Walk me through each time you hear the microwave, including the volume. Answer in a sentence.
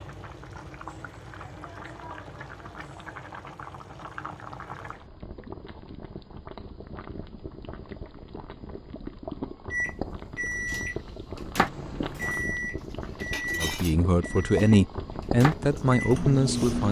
You can hear the microwave from 9.7 to 16.8 s, getting quieter then louder.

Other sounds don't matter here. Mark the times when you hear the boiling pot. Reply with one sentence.
You can hear the boiling pot from 0.0 to 16.8 s.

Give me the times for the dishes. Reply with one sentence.
The dishes can be heard from 12.1 to 12.6 s and from 13.2 to 13.9 s.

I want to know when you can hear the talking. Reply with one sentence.
You can hear the talking from 13.6 to 16.8 s.